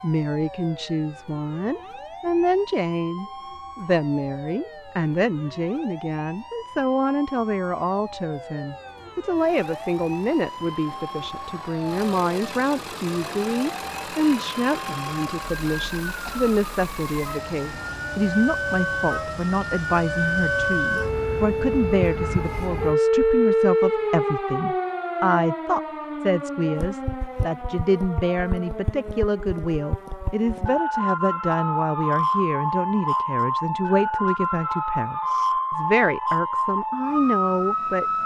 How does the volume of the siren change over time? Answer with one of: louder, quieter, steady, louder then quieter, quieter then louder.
louder.